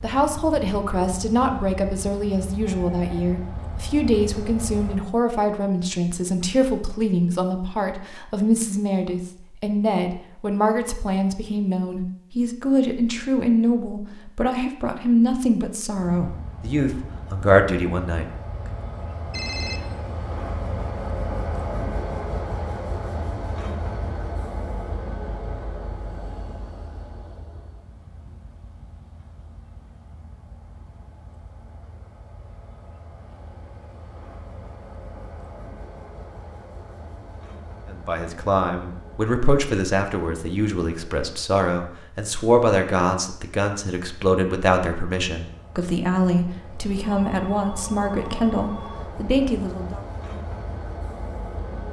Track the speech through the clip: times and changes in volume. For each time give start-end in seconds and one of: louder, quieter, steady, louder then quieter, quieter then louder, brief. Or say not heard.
0.0-18.8 steady
37.9-50.0 steady.